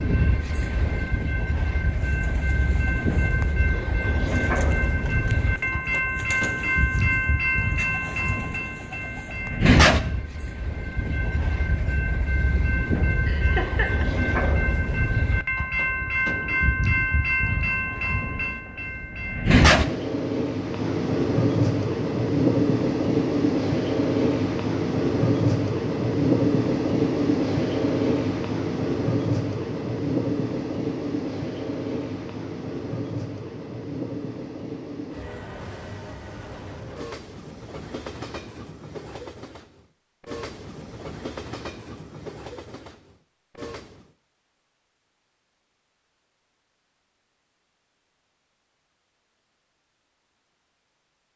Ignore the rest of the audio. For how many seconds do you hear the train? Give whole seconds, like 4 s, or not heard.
44 s.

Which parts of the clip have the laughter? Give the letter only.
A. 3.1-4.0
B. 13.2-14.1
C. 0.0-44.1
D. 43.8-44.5
B.